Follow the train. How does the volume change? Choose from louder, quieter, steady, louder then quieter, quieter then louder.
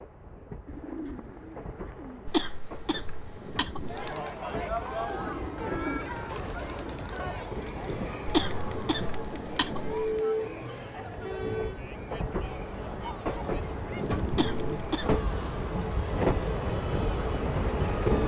louder.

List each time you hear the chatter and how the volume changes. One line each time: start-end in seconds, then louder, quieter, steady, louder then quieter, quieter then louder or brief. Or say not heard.
3.9-18.1 quieter.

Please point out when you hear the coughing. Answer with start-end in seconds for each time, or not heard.
2.2-4.0, 8.2-10.2, 14.3-15.2.